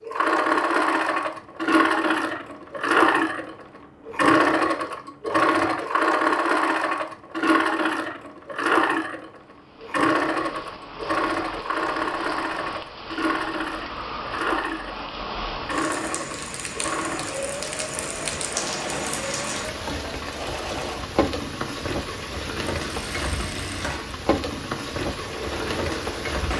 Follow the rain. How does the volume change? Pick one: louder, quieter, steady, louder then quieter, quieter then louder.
louder.